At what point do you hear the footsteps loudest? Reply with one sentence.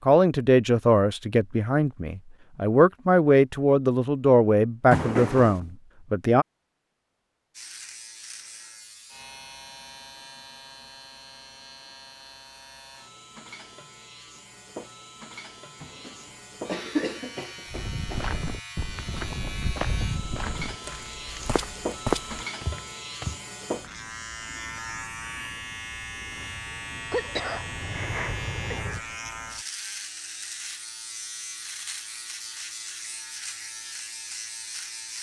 The loudest moment of the footsteps is at 22 seconds.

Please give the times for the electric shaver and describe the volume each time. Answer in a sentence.
The electric shaver can be heard from 7.5 to 35.1 s, getting louder.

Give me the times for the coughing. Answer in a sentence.
You can hear the coughing from 4.9 to 5.7 s, from 15.8 to 18.2 s and from 27.1 to 29.0 s.